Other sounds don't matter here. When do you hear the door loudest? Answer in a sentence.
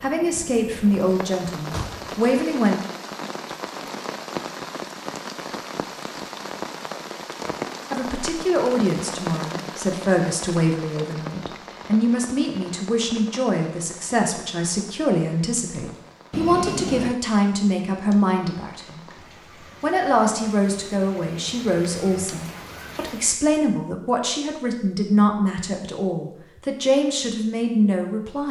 The volume of the door peaks at 17 seconds.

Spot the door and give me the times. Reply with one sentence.
The door can be heard from 1.6 to 2.1 s and from 16.3 to 17.1 s.